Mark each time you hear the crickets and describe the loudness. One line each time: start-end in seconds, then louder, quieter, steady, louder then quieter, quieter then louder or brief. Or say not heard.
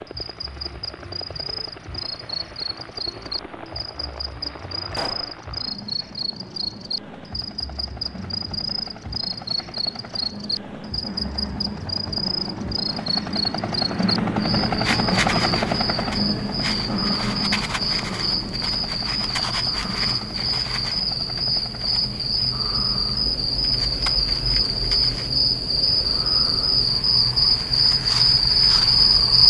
0.0-29.4 louder.